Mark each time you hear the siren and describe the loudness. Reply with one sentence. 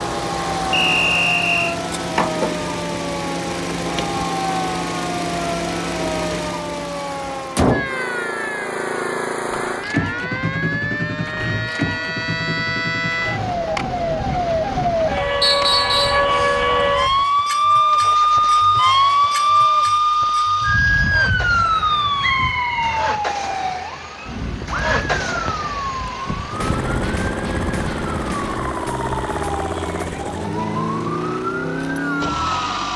The siren can be heard from 0.0 to 32.9 s, getting louder then quieter.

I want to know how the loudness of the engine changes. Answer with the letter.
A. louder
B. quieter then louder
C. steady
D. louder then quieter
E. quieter
B.